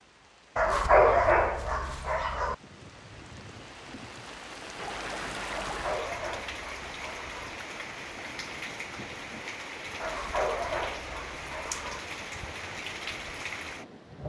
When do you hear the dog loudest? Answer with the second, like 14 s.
1 s.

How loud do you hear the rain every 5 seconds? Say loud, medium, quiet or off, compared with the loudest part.
medium, loud, loud.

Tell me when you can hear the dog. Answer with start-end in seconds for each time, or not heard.
0.6-2.5, 5.5-7.5, 10.0-12.0.